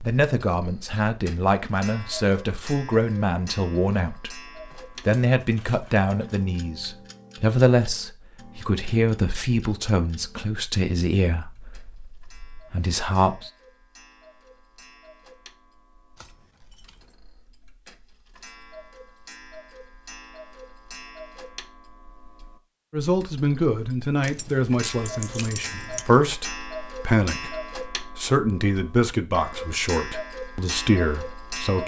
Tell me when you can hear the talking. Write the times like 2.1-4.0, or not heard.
0.0-13.5, 22.9-31.8.